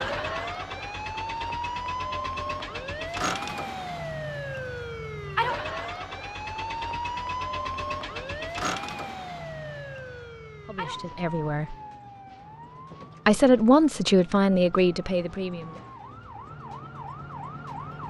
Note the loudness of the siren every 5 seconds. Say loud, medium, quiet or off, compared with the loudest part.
loud, loud, medium, medium.